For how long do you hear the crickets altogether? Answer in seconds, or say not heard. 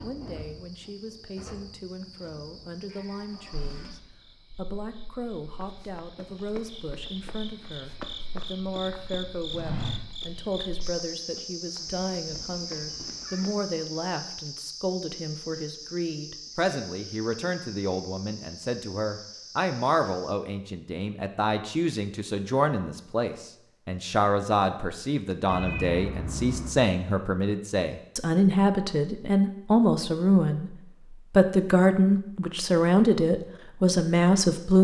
20 s.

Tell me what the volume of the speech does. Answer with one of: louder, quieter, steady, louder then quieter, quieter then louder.
louder.